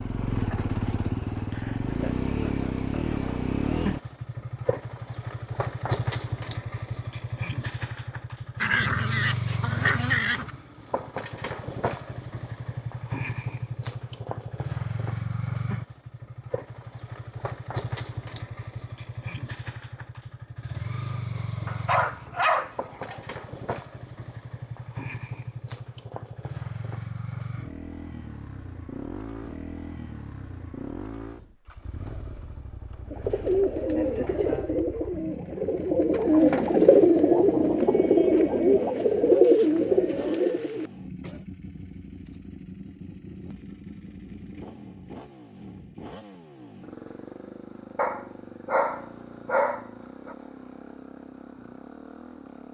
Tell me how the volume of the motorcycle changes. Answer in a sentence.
The volume of the motorcycle goes down.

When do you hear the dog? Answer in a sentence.
The dog can be heard from 8.6 to 10.5 s, from 21.6 to 23.2 s and from 48.0 to 50.4 s.